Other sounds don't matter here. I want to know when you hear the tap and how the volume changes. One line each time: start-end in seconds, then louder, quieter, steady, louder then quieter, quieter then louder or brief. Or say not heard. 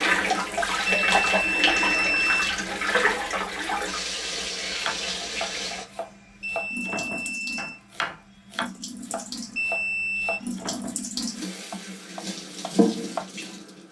0.0-13.8 quieter then louder.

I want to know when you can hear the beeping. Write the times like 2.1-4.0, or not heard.
0.8-2.4, 6.4-7.8, 9.6-10.4.